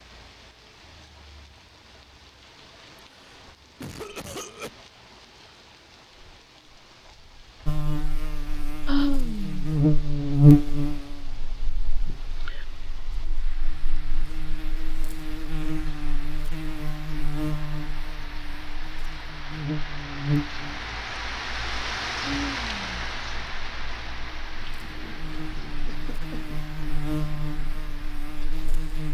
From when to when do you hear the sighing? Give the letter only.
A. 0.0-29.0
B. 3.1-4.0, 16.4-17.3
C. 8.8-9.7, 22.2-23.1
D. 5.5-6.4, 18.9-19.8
C.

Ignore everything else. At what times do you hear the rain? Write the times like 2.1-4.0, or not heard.
0.0-29.0.